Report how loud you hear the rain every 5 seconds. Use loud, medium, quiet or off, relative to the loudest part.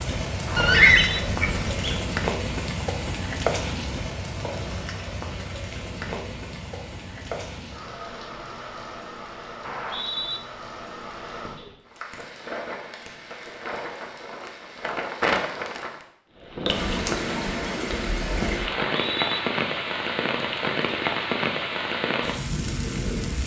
loud, medium, medium, loud, loud.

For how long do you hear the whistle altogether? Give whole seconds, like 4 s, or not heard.
2 s.